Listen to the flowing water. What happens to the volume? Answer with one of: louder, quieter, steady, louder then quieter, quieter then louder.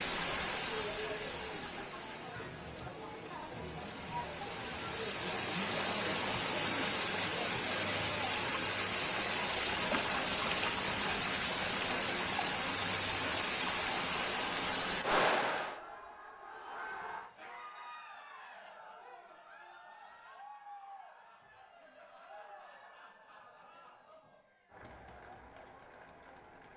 louder.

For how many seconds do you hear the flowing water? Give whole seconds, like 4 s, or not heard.
16 s.